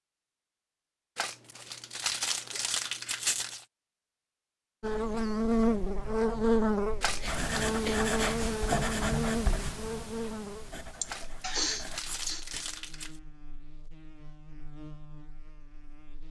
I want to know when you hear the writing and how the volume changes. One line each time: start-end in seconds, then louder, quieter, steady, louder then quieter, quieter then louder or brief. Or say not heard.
7.2-12.7 quieter.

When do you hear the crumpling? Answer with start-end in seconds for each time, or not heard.
1.1-3.6, 7.0-7.8, 11.1-13.2.